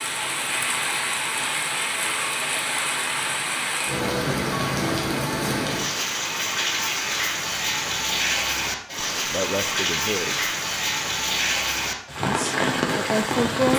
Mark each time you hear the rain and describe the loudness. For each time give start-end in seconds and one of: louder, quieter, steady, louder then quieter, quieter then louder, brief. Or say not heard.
0.0-13.7 steady.